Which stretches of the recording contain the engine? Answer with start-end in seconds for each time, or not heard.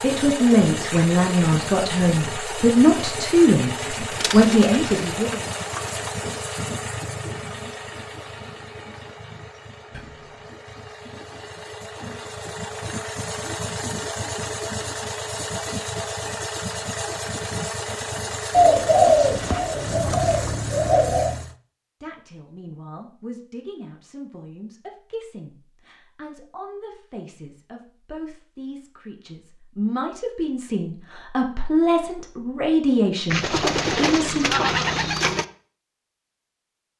0.0-21.6.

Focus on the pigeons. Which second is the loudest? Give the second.
19 s.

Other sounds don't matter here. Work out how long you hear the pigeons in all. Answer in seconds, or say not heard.
7 s.